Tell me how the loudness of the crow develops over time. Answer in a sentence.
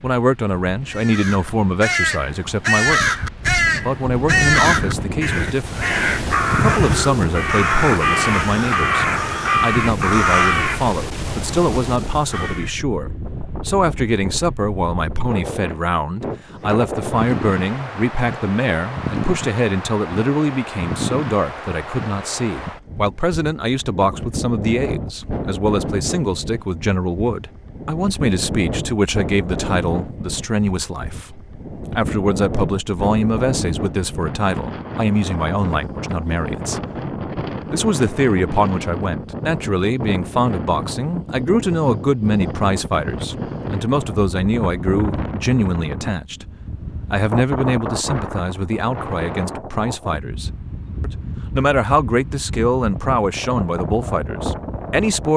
The volume of the crow stays about the same.